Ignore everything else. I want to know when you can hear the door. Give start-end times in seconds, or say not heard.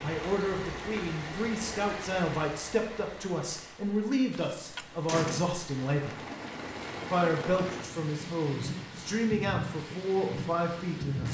4.3-5.5.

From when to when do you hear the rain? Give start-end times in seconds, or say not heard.
0.0-11.2.